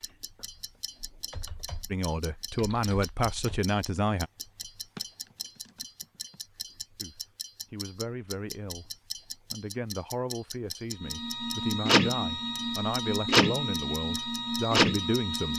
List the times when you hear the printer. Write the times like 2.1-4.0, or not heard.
11.0-15.5.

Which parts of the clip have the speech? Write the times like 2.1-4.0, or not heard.
1.9-4.3, 7.0-15.5.